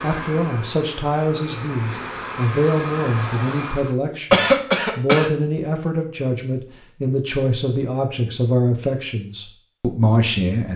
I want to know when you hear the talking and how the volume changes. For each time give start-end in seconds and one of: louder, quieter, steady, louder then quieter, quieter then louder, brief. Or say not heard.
0.0-10.7 steady.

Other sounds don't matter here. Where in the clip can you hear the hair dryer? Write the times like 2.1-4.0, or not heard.
0.0-4.0.